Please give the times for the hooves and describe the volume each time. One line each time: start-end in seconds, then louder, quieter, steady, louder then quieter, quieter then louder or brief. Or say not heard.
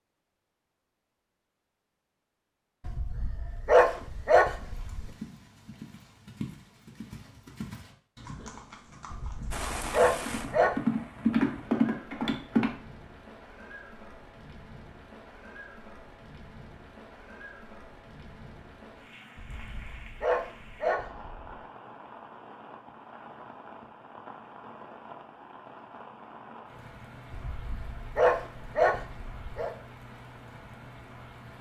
3.8-12.7 louder.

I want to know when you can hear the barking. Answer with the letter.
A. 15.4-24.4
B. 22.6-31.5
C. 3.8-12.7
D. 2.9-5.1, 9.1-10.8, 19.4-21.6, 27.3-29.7
D.